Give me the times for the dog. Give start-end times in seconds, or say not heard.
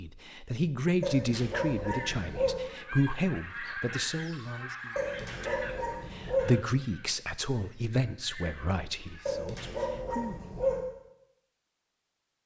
1.0-2.6, 5.0-6.5, 9.2-10.8.